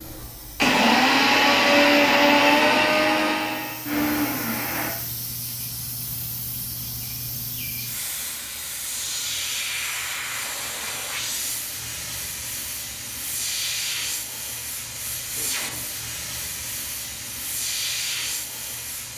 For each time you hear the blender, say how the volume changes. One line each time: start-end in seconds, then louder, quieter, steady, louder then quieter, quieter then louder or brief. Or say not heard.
0.0-4.9 quieter.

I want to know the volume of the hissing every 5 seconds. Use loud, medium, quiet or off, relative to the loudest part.
medium, loud, loud, loud.